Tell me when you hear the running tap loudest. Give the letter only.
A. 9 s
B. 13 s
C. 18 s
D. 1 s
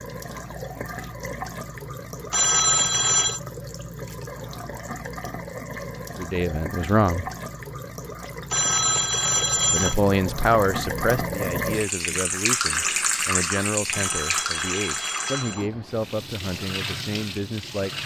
B.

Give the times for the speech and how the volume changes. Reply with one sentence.
The speech can be heard briefly from 6.2 to 7.2 s; and from 9.7 to 18.0 s, getting quieter.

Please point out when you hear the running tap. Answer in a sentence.
The running tap can be heard from 0.0 to 18.0 s.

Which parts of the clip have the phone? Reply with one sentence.
The phone can be heard from 2.3 to 3.4 s, from 8.5 to 9.9 s and from 13.9 to 15.7 s.